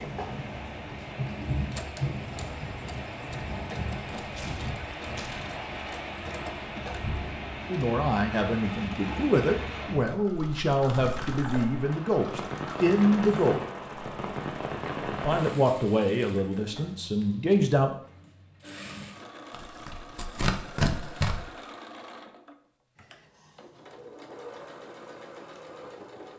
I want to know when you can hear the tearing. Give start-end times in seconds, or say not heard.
4.2-5.5, 10.9-11.4, 19.5-21.4.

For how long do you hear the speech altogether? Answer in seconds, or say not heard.
9 s.